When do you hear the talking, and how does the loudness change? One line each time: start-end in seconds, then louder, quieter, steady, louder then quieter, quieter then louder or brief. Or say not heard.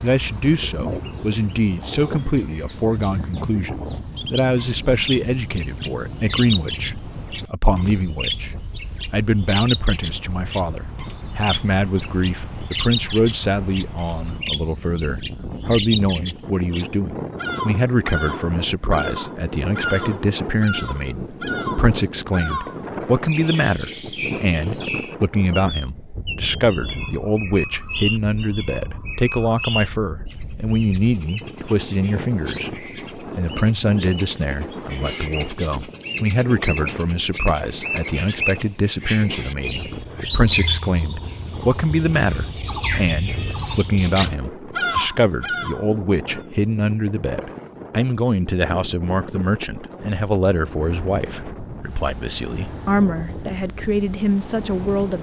0.0-55.1 steady.